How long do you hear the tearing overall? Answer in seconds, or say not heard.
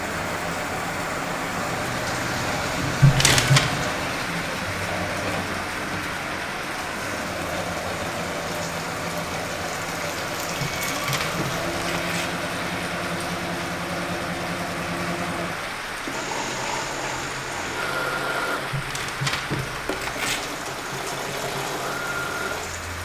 4 s.